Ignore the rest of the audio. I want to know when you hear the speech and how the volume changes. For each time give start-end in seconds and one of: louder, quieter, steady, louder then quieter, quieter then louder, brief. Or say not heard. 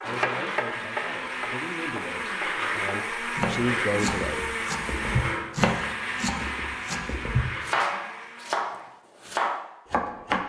0.0-4.5 louder.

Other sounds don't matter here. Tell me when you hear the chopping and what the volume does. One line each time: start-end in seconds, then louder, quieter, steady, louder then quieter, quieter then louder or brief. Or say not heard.
0.0-10.4 louder.